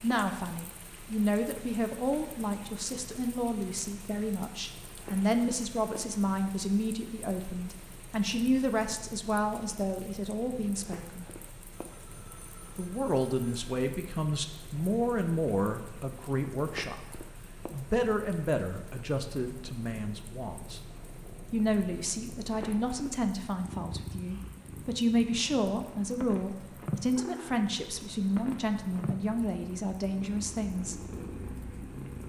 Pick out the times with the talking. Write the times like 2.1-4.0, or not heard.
0.0-11.3, 12.8-20.8, 21.5-30.9.